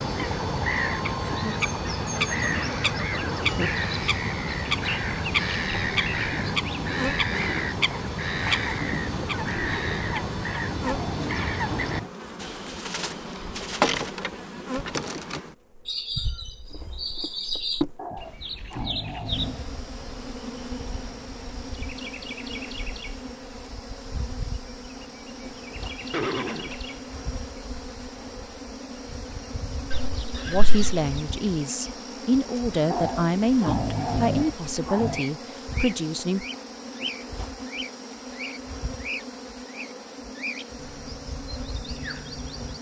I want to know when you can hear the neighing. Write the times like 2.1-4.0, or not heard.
1.9-3.7, 26.1-26.8, 29.9-31.0.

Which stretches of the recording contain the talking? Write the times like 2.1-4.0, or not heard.
30.4-36.5.